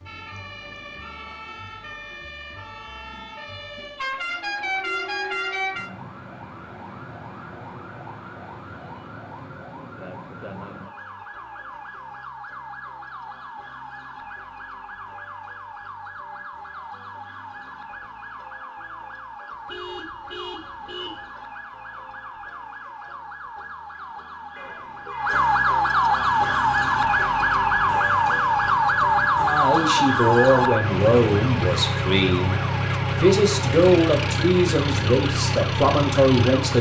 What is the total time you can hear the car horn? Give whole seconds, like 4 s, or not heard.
5 s.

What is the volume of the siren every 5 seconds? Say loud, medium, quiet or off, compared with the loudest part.
quiet, quiet, quiet, quiet, quiet, loud, medium, quiet.